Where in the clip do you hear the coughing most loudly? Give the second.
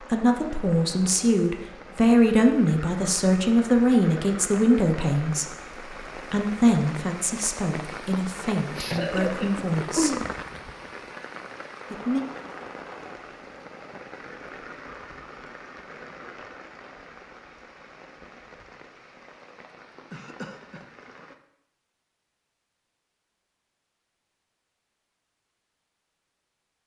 9 s.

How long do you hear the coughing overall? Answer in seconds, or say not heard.
2 s.